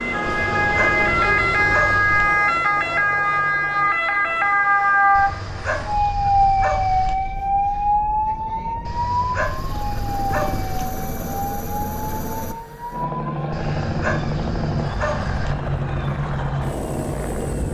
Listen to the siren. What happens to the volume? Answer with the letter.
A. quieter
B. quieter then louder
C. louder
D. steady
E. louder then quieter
A.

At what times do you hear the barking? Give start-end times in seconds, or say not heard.
0.2-2.2, 5.1-7.2, 8.8-10.8, 13.5-15.6.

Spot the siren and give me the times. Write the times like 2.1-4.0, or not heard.
0.0-17.6.